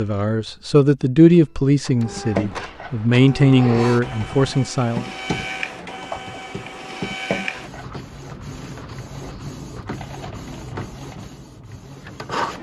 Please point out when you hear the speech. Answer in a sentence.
The speech can be heard from 0.0 to 5.0 s.